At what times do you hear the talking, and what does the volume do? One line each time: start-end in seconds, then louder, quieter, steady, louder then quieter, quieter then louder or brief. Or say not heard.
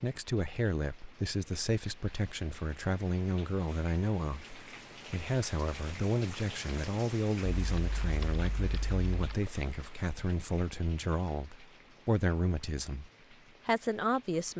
0.0-14.5 steady.